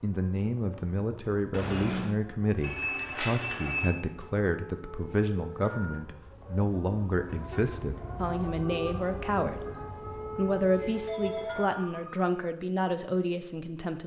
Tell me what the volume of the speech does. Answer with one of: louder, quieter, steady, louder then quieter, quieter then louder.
steady.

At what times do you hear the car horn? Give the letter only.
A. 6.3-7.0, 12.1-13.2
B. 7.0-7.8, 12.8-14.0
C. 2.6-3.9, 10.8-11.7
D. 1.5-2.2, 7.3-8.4
D.